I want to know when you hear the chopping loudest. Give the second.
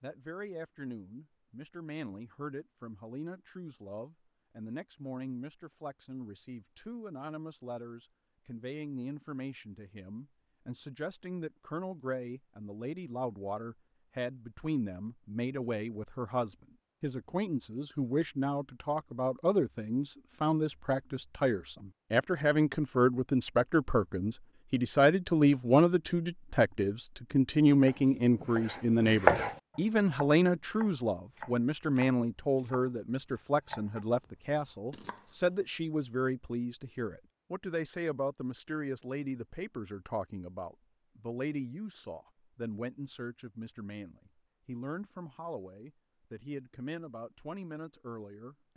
29 s.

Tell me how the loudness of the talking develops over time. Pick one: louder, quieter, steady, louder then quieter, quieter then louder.
louder then quieter.